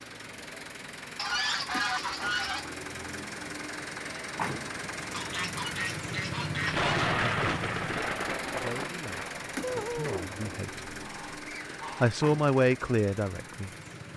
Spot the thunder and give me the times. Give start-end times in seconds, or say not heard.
6.5-10.6.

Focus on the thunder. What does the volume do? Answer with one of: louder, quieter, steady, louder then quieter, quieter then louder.
quieter.